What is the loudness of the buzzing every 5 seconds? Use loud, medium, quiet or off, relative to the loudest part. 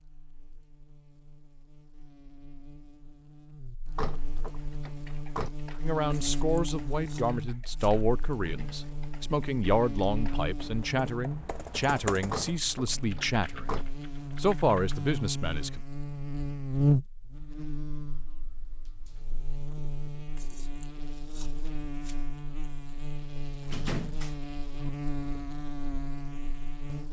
quiet, medium, medium, loud, medium, medium.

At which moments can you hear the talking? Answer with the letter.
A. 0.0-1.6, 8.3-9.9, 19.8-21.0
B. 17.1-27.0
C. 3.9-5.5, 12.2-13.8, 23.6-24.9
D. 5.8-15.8
D.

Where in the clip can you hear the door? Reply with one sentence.
You can hear the door from 3.9 to 5.5 s, from 12.2 to 13.8 s and from 23.6 to 24.9 s.